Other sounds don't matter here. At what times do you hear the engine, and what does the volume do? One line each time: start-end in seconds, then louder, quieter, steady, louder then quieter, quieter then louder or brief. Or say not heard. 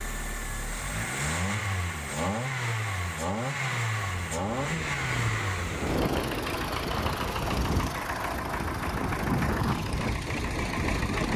0.0-11.3 steady.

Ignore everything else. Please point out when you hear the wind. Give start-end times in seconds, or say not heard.
4.2-11.3.